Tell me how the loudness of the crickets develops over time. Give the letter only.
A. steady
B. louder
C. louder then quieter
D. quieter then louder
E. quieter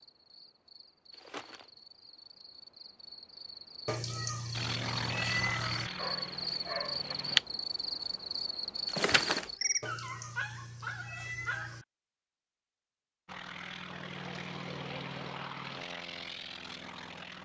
B.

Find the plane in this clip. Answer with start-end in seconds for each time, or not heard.
4.5-7.4, 13.2-17.4.